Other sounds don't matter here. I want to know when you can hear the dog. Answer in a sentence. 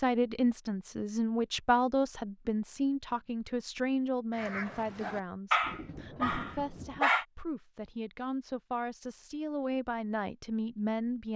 The dog can be heard from 4.3 to 7.2 s.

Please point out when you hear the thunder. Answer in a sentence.
You can hear the thunder from 5.6 to 7.0 s.